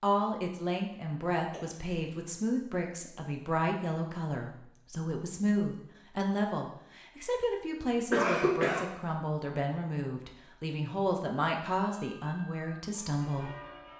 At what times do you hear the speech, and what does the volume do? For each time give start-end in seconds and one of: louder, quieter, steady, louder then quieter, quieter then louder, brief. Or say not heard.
0.0-13.5 steady.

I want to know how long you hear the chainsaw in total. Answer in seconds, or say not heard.
not heard.